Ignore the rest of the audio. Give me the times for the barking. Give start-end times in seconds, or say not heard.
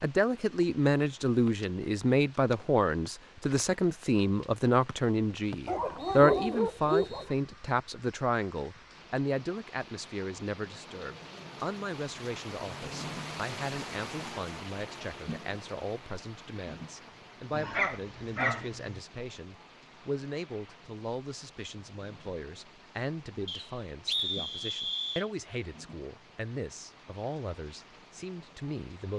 5.7-7.3, 17.5-19.0.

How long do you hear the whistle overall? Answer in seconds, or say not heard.
4 s.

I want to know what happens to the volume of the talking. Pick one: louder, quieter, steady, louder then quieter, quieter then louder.
quieter.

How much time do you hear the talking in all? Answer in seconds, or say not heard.
29 s.